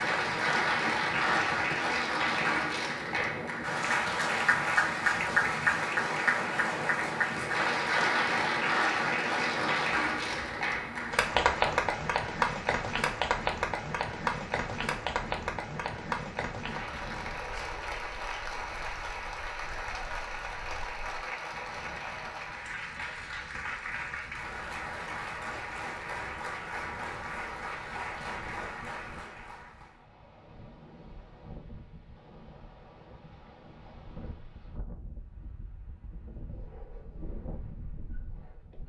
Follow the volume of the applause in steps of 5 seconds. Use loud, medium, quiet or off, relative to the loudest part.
loud, loud, loud, medium, medium, medium, off, off.